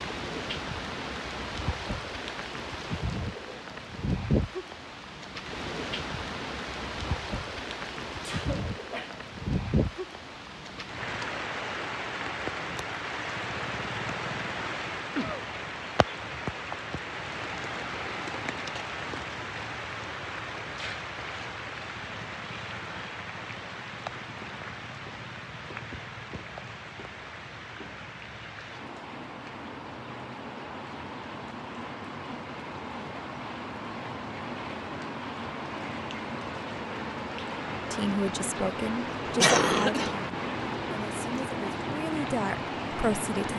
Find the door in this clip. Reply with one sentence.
You can't hear the door here.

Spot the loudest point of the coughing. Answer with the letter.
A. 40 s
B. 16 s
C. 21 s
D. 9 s
A.